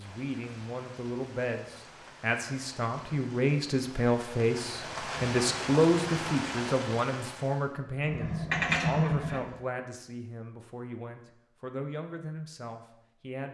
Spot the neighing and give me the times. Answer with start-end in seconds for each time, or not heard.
8.0-9.4.